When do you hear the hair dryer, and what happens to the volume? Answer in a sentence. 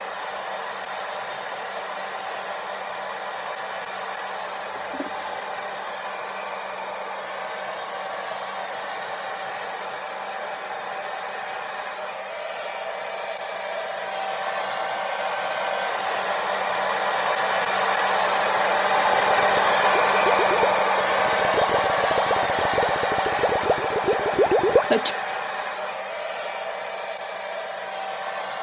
You can hear the hair dryer from 0.0 to 28.5 s, getting louder then quieter.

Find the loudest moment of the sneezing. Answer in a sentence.
The loudest moment of the sneezing is at 25 seconds.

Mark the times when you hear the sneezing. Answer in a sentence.
The sneezing can be heard from 4.7 to 5.4 s and from 24.1 to 25.2 s.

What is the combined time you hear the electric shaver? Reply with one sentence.
You can't hear the electric shaver here.